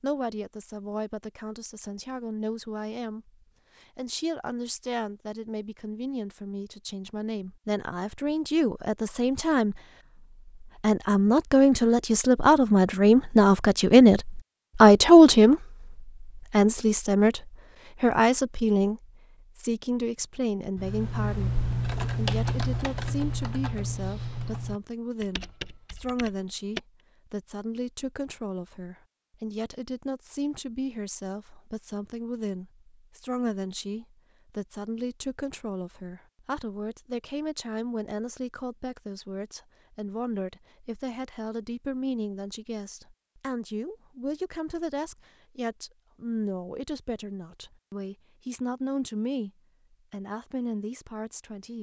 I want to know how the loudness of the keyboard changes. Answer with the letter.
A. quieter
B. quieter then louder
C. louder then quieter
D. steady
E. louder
A.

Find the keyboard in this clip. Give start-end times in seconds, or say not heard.
20.8-26.8.